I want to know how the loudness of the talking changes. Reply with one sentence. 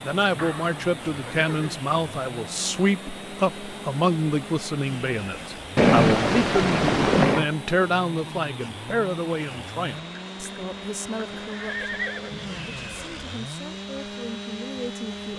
The loudness of the talking goes down.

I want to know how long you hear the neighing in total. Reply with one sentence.
You can hear the neighing for 5 seconds altogether.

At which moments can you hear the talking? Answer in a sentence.
The talking can be heard from 0.0 to 15.3 s.